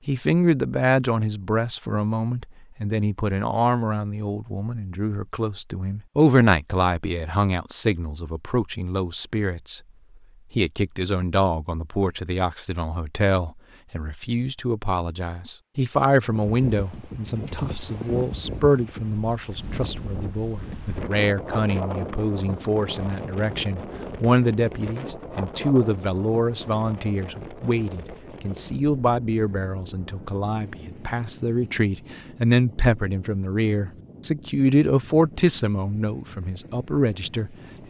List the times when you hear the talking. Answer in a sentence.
The talking can be heard from 0.1 to 9.8 s and from 10.5 to 37.8 s.